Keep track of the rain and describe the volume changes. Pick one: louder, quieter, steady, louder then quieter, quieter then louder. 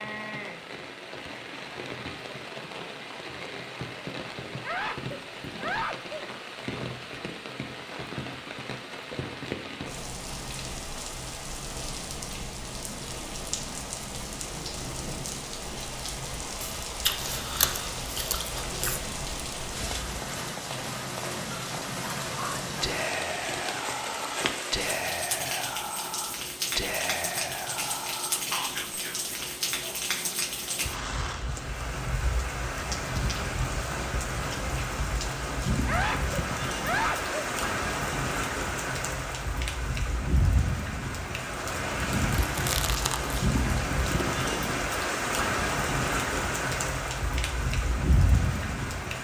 louder.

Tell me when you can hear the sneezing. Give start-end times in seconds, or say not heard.
4.6-6.2, 35.9-37.4.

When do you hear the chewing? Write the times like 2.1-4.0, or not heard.
16.6-19.0, 42.5-44.5.